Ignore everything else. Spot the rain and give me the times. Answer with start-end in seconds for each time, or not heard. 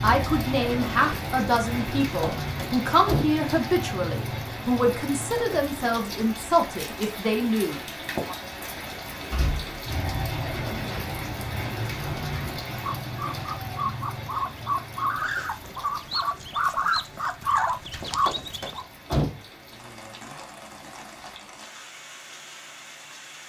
0.0-23.4.